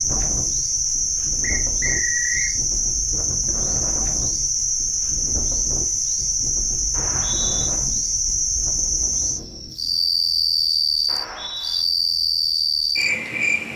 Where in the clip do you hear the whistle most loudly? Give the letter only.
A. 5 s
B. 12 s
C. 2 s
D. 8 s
C.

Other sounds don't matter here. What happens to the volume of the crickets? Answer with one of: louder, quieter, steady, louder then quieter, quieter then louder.
steady.